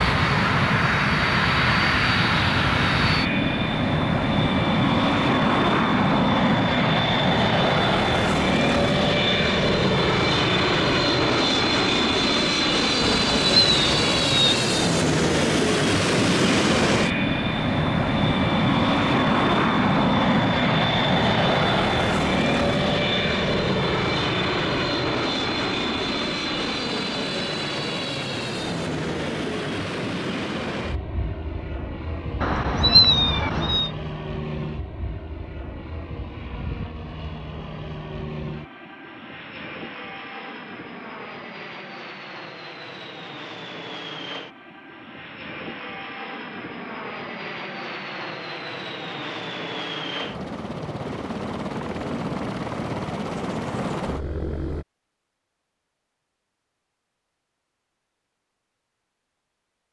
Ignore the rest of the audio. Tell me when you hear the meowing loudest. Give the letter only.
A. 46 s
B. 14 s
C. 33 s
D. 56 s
C.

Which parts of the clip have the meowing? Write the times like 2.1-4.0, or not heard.
13.0-14.6, 32.4-33.9.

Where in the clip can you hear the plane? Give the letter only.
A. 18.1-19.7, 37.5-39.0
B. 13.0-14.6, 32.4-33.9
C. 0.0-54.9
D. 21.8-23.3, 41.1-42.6
C.